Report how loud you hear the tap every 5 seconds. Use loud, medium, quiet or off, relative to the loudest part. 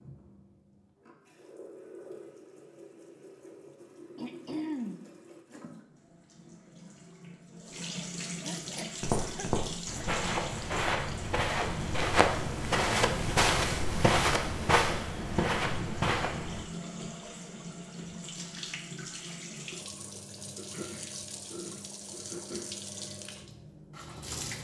medium, loud, loud, loud, loud.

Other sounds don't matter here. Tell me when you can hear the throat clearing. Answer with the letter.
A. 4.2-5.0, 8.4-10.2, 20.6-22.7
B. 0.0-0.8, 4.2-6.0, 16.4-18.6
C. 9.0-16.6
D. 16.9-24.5
A.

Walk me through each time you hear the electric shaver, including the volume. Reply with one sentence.
The electric shaver can't be heard in this clip.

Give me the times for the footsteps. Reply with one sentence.
You can hear the footsteps from 9.0 to 16.6 s.